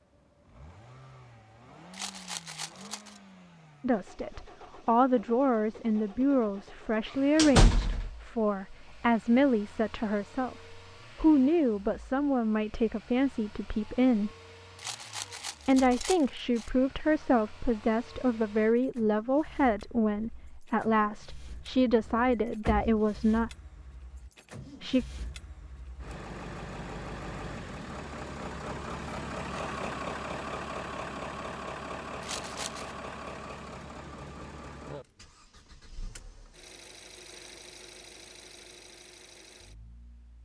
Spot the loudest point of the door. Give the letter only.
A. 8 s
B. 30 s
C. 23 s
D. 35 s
A.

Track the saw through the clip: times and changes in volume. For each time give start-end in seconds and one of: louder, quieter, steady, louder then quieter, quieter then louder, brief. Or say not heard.
not heard.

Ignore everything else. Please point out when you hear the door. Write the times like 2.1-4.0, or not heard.
7.3-8.1, 22.0-22.9.